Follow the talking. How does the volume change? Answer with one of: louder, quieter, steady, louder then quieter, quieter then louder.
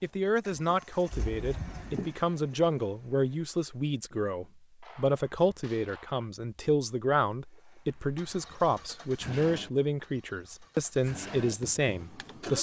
steady.